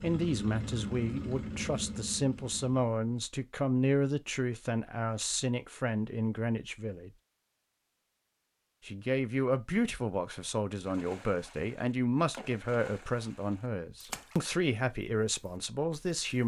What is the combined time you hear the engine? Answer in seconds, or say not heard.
3 s.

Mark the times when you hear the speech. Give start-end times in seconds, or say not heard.
0.0-7.1, 8.8-16.4.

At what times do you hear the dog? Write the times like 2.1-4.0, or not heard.
not heard.